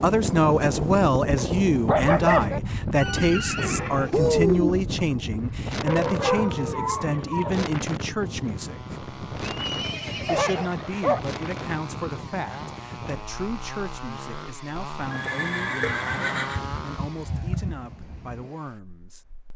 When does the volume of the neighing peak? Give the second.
4 s.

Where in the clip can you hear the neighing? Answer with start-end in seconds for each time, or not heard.
3.0-4.8, 9.4-10.7, 15.1-16.6.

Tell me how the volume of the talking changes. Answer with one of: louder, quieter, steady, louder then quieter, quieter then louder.
quieter.